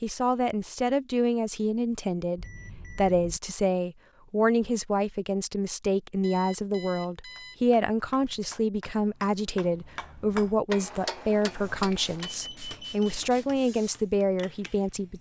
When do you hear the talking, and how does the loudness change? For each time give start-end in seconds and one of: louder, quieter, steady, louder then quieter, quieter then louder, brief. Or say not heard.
0.0-15.1 steady.